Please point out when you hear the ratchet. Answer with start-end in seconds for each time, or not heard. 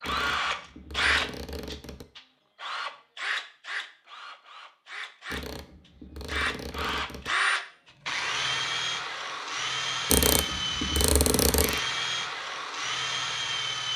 0.0-2.0, 5.3-7.3, 10.1-11.8.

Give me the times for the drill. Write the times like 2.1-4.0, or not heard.
0.0-13.9.